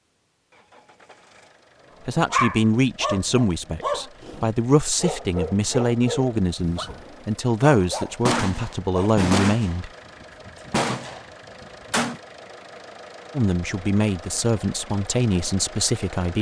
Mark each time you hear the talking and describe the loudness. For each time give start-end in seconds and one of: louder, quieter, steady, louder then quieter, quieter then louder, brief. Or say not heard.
2.0-9.9 steady
13.3-16.3 brief.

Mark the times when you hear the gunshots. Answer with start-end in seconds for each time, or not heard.
8.2-12.2.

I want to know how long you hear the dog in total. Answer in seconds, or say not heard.
7 s.